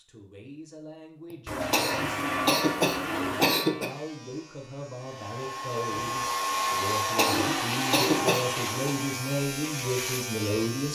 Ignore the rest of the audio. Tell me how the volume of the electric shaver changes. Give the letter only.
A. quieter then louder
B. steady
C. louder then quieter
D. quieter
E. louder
A.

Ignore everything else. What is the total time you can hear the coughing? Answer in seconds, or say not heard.
4 s.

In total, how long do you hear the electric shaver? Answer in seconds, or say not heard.
9 s.